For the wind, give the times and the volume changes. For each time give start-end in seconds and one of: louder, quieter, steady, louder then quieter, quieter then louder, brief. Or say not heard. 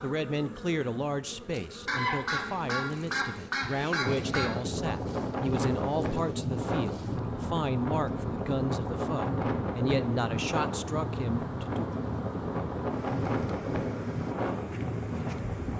4.0-15.7 steady.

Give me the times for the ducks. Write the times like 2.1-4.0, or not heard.
1.9-4.6.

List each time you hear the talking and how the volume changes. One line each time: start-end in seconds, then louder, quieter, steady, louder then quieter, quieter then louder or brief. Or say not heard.
0.0-11.8 steady.